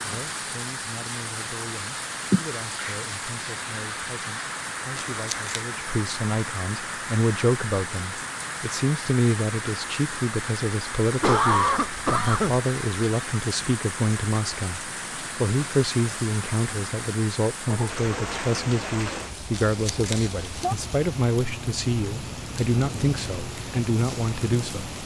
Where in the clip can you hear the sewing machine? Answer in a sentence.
The sewing machine can't be heard in this clip.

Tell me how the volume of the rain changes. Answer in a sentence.
The volume of the rain stays about the same.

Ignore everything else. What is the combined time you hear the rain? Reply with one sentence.
The rain can be heard for 25 seconds in total.